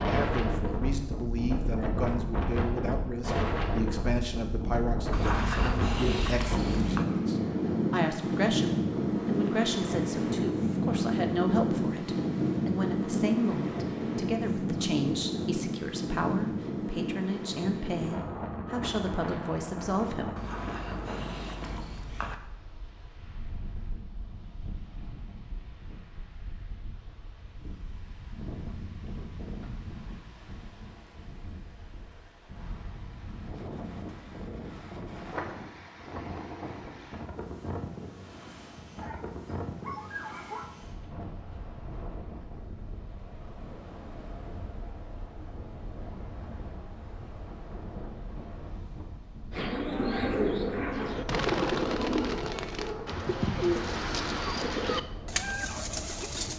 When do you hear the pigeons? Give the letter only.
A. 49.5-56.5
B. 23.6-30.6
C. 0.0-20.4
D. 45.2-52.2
A.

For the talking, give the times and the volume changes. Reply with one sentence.
The talking can be heard from 0.0 to 20.4 s, at a steady volume.